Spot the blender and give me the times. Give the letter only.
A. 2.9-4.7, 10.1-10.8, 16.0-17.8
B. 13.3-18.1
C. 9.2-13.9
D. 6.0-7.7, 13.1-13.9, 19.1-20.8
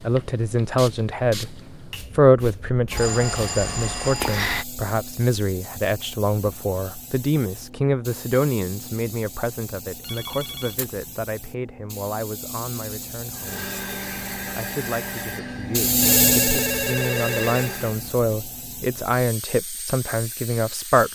B.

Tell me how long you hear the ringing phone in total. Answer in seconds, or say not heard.
4 s.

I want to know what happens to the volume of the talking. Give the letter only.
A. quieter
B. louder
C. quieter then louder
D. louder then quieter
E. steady
C.